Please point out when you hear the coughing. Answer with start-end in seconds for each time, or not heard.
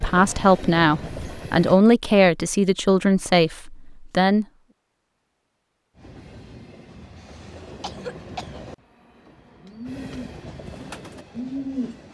7.2-8.8.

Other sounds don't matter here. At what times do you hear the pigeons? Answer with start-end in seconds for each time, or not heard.
9.2-11.9.